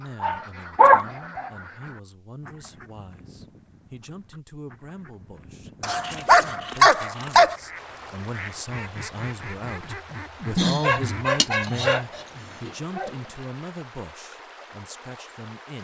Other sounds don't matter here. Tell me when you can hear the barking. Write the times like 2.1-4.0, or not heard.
0.2-1.5, 5.8-7.5, 10.6-12.1, 12.7-13.1.